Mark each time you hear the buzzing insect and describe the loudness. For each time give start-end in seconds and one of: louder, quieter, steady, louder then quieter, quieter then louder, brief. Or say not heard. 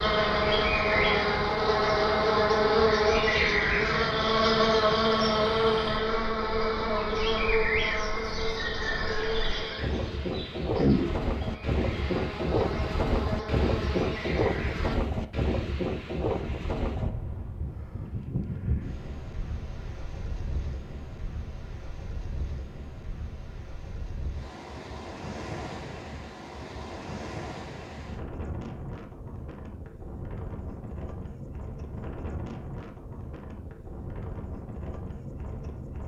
0.0-14.9 quieter.